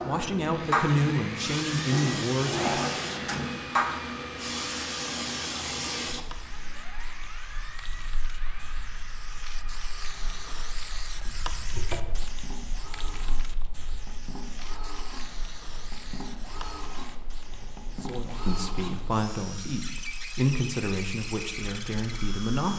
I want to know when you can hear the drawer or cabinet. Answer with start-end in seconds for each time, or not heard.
1.9-3.5, 11.7-12.4.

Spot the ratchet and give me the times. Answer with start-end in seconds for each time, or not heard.
not heard.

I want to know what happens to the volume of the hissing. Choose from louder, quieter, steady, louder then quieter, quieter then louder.
quieter.